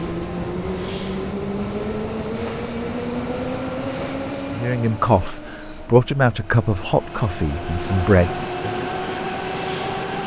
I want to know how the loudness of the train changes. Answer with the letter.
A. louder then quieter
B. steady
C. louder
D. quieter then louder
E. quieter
D.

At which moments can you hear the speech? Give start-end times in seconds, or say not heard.
4.5-8.8.